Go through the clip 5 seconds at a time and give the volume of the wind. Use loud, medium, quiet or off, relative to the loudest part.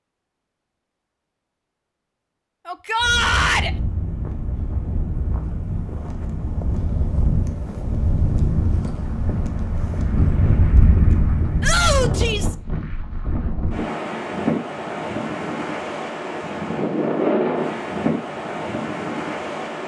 medium, loud, loud, loud.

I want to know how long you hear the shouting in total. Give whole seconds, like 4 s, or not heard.
2 s.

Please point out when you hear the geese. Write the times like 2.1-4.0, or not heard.
not heard.